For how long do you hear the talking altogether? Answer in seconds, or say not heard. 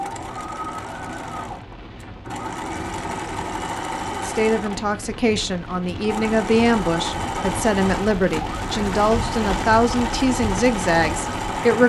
8 s.